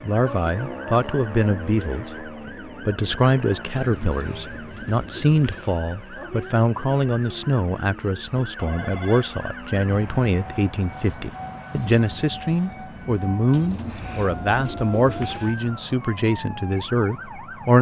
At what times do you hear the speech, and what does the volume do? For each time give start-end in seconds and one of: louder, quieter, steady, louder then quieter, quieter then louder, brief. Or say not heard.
0.0-17.7 steady.